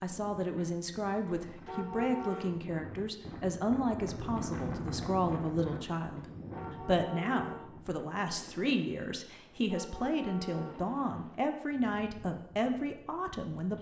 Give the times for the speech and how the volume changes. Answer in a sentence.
The speech can be heard from 0.0 to 13.7 s, at a steady volume.